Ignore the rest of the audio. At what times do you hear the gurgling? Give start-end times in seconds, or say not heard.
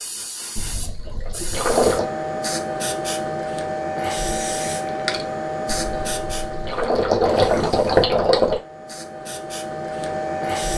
0.6-2.1, 5.7-8.6.